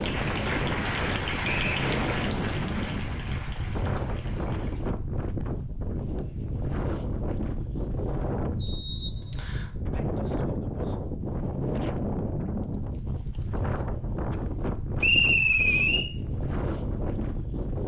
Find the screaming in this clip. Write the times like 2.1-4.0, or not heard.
not heard.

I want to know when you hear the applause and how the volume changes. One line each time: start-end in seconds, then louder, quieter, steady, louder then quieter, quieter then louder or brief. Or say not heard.
0.0-5.0 quieter.